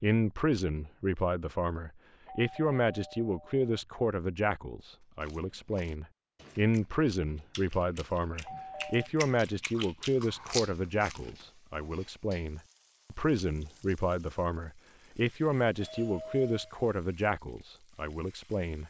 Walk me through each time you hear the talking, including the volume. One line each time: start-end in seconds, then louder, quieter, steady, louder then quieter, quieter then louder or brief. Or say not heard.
0.0-18.8 steady.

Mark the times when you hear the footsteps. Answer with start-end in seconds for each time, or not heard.
not heard.